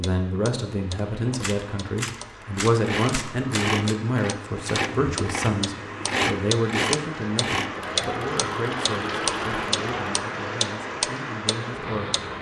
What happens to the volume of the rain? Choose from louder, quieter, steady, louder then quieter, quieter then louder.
louder.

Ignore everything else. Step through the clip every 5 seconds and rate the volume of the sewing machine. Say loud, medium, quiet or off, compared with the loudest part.
loud, loud, off.